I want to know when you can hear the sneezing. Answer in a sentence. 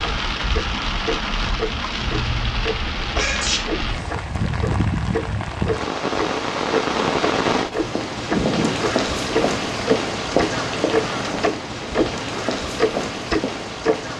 You can hear the sneezing from 3.1 to 3.6 s and from 8.3 to 8.9 s.